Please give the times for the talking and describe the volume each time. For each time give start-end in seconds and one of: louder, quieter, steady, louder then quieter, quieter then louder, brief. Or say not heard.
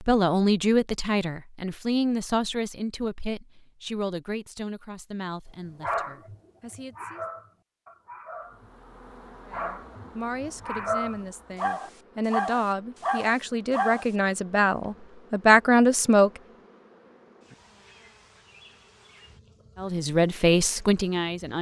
0.0-7.2 quieter
9.4-16.3 louder
19.8-21.5 brief.